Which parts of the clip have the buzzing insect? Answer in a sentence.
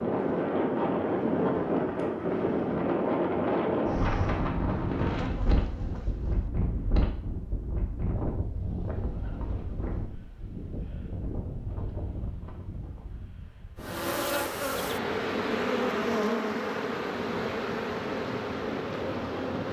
You can hear the buzzing insect from 5.0 to 6.5 s and from 13.8 to 19.6 s.